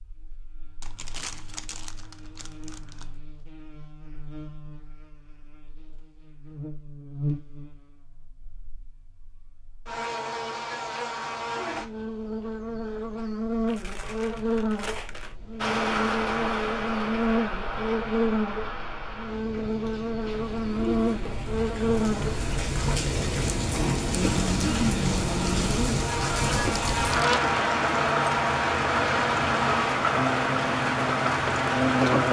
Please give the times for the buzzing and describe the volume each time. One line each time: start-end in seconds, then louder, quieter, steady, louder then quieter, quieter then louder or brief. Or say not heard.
0.0-32.2 louder.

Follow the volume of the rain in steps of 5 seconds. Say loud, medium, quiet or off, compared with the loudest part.
off, off, off, medium, medium, loud, loud.